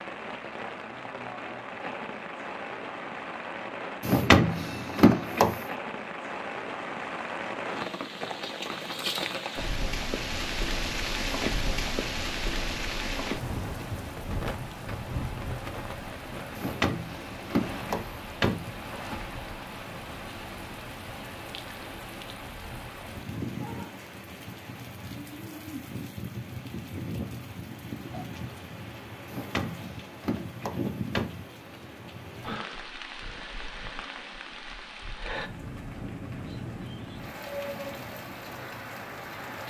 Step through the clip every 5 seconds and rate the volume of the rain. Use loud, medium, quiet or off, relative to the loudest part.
medium, loud, loud, medium, medium, medium, medium, medium.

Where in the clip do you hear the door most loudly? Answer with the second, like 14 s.
4 s.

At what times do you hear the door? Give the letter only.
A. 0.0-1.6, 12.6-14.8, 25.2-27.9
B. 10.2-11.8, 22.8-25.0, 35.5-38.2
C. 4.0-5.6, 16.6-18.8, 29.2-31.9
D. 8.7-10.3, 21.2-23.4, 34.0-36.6
C.